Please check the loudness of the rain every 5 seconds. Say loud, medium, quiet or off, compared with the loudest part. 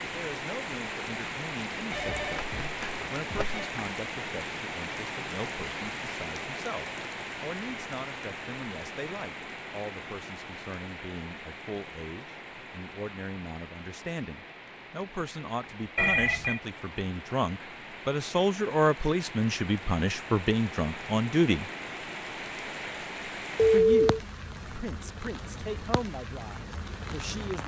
loud, loud, medium, medium, loud, medium.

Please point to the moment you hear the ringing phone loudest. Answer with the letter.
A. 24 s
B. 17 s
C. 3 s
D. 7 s
A.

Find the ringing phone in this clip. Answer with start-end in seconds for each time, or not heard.
1.9-3.6, 15.9-16.6, 23.6-24.2.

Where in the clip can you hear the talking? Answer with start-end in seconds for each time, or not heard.
0.0-21.7, 23.7-27.6.